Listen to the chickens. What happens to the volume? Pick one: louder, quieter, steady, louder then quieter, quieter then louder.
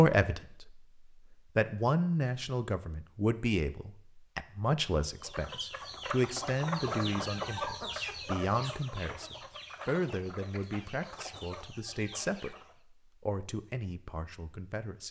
quieter.